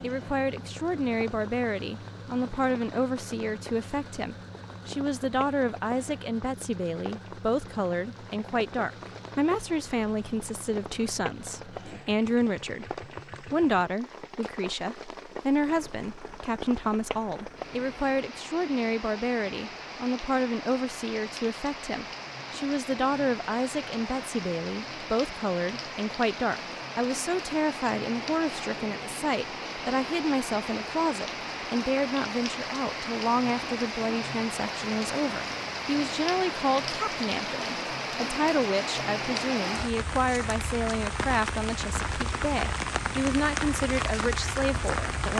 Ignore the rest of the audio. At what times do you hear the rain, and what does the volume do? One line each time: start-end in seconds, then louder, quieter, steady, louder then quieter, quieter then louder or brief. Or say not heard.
0.0-45.3 louder.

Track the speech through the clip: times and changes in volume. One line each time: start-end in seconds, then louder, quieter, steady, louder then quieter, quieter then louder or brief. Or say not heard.
0.0-45.3 steady.